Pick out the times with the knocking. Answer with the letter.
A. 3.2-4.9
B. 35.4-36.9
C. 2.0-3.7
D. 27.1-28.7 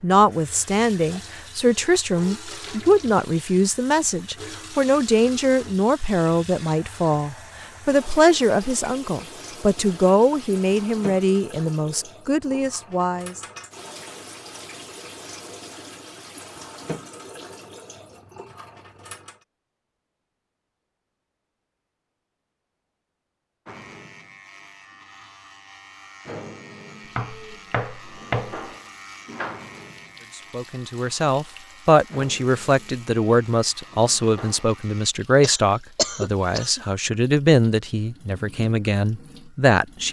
D.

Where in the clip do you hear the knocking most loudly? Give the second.
28 s.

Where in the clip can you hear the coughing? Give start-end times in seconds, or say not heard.
35.4-36.9.